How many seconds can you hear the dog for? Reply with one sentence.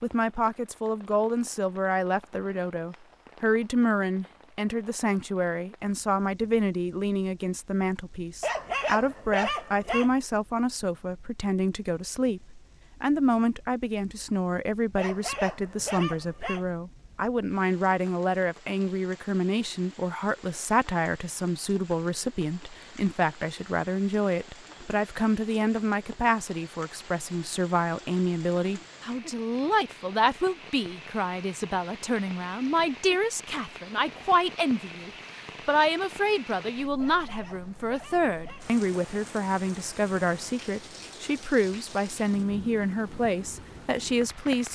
You can hear the dog for 5 seconds altogether.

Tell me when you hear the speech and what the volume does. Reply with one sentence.
The speech can be heard from 0.0 to 44.6 s, at a steady volume.